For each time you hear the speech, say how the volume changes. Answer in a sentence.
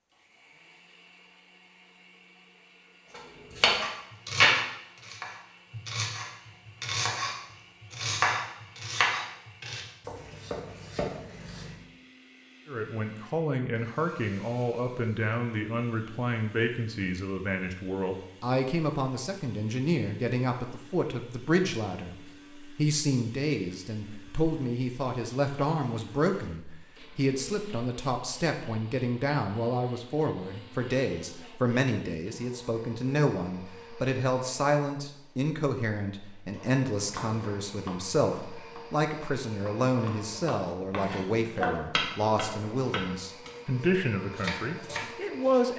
The speech can be heard from 12.7 to 45.7 s, at a steady volume.